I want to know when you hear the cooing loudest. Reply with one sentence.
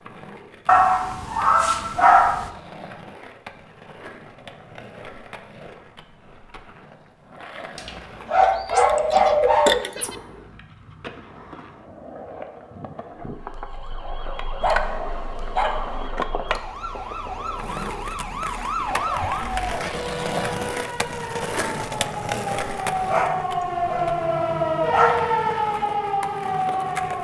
The loudest moment of the cooing is at 10 seconds.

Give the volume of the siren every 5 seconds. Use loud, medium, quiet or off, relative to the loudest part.
off, off, quiet, medium, loud, loud.